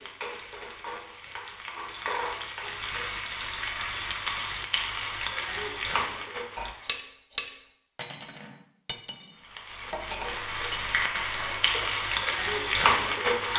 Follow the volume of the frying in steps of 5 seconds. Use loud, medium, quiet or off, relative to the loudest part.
medium, medium, loud.